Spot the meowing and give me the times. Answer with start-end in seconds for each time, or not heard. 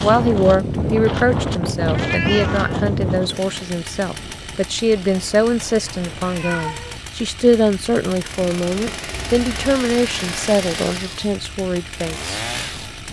1.9-2.8, 5.8-7.0, 9.1-9.6.